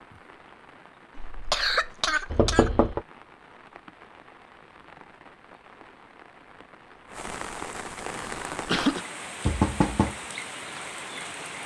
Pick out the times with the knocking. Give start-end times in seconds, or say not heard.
2.3-3.0, 9.4-10.2.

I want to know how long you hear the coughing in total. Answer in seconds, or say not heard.
3 s.